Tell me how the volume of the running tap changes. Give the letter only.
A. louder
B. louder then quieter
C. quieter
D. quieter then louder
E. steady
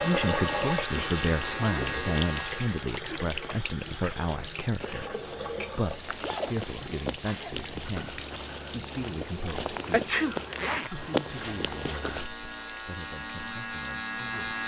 C.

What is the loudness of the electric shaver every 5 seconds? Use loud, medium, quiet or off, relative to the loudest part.
loud, off, loud.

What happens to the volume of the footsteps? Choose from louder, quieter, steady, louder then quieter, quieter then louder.
louder.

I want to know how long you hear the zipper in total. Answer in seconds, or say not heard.
2 s.